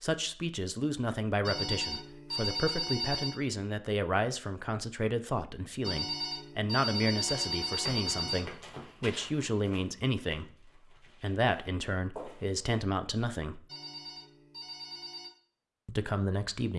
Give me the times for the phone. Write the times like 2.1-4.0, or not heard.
1.4-3.4, 5.8-8.4, 13.7-15.3.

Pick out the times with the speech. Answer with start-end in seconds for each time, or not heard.
0.0-10.5, 11.2-13.7, 15.8-16.7.